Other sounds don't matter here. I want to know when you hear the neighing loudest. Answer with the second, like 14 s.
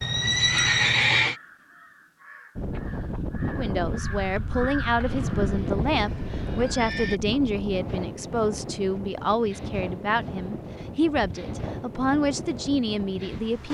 1 s.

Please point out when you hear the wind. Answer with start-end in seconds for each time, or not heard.
2.5-13.6.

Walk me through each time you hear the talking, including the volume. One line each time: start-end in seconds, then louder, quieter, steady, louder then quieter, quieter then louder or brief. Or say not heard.
3.5-13.6 steady.